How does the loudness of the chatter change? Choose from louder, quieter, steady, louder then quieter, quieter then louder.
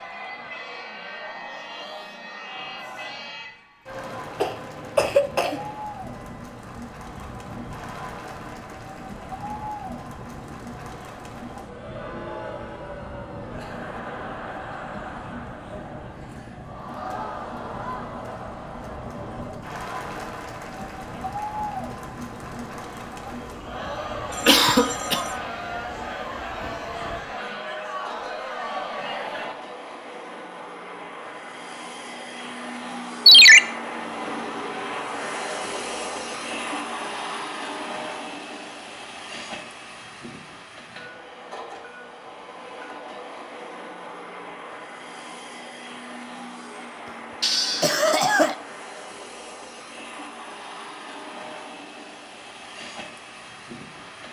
louder.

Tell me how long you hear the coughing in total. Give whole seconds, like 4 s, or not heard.
3 s.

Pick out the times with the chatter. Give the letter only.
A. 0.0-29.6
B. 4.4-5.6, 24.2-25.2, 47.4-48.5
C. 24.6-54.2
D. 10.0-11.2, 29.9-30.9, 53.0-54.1
A.